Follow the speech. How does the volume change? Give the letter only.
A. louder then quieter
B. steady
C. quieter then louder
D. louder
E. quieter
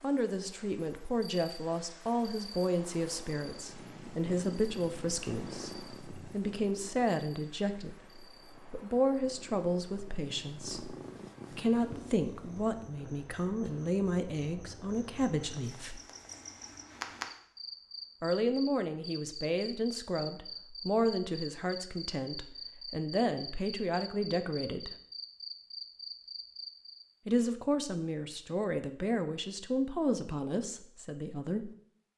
B.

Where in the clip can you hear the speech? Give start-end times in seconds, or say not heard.
0.0-16.0, 18.2-24.9, 27.2-31.7.